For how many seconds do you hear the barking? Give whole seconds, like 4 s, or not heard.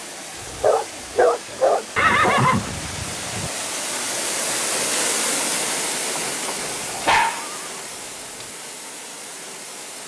4 s.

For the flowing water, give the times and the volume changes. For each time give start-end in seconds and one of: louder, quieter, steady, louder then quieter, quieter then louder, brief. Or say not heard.
0.0-10.0 louder then quieter.